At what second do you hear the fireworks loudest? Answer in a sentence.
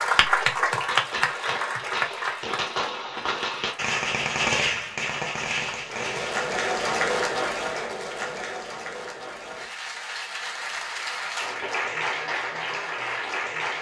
The volume of the fireworks peaks at 5 seconds.